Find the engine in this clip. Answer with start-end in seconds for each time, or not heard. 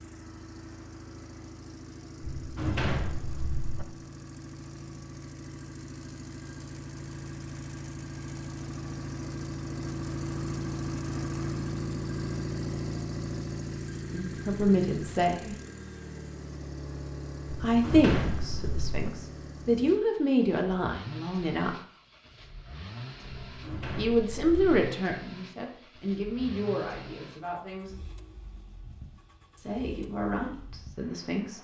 0.0-31.5.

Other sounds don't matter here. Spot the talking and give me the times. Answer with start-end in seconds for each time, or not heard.
14.1-15.6, 17.6-21.8, 23.9-28.0, 29.6-31.5.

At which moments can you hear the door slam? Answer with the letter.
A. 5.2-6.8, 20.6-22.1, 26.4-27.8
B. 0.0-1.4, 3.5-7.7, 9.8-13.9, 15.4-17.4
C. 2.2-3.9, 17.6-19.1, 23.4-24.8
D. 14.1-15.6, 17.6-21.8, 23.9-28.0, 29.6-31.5
C.